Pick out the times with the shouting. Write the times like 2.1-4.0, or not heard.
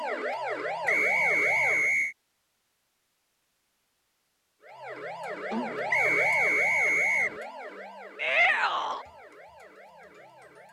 8.2-9.1.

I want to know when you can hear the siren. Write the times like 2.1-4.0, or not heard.
0.0-1.9, 4.6-10.6.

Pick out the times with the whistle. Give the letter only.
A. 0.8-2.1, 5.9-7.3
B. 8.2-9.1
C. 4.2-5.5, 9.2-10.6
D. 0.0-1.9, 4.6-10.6
A.